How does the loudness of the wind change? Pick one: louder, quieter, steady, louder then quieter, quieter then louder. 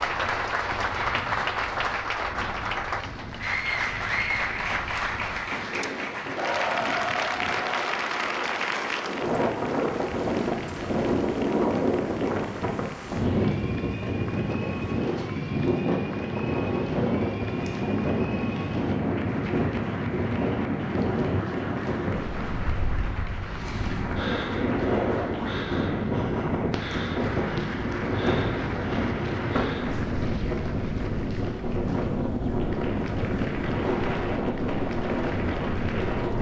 louder.